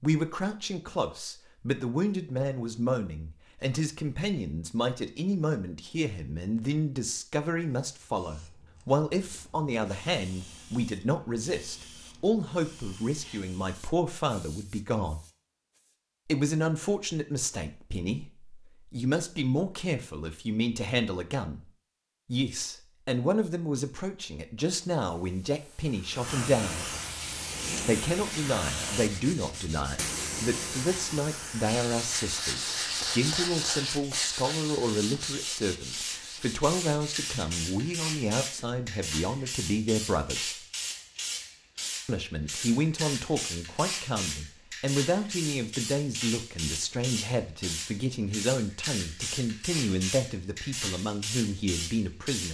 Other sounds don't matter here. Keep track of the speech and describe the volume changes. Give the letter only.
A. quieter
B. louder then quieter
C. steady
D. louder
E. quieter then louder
C.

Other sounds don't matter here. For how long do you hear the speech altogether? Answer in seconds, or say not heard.
48 s.